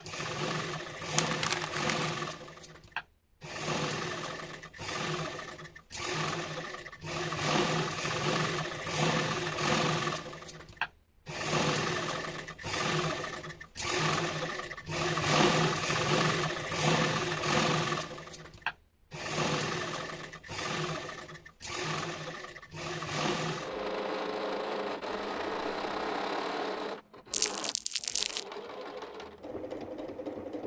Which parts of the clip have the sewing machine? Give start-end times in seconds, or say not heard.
0.0-30.6.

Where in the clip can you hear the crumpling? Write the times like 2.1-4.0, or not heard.
1.1-2.1, 27.3-28.4.